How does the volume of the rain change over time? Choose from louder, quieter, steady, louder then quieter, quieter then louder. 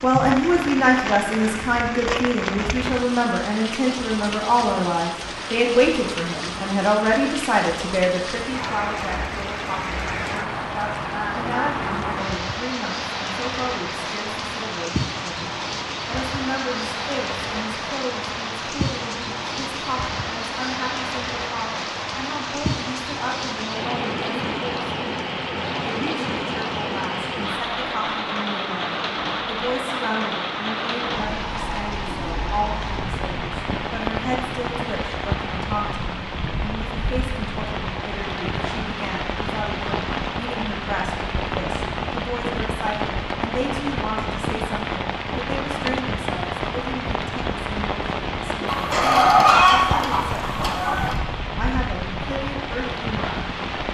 steady.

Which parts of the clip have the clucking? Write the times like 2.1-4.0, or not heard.
48.6-51.1.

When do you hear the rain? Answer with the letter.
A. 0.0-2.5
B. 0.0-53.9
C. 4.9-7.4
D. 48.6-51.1
B.